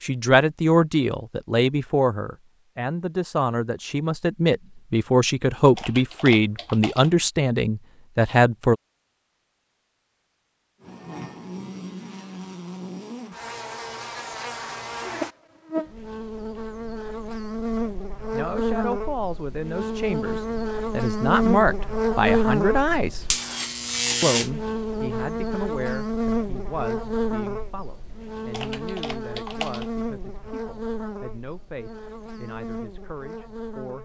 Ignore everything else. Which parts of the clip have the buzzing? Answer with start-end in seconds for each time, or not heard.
10.8-34.0.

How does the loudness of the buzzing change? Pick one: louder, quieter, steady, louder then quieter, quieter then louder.
louder then quieter.